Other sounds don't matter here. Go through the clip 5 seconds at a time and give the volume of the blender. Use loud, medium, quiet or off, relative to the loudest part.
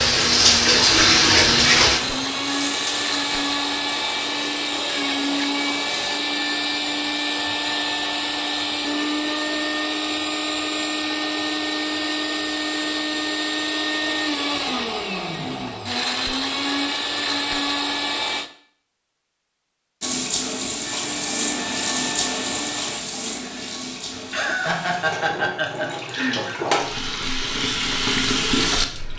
loud, loud, loud, loud, medium, off.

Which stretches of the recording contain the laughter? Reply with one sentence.
The laughter can be heard from 24.1 to 26.6 s.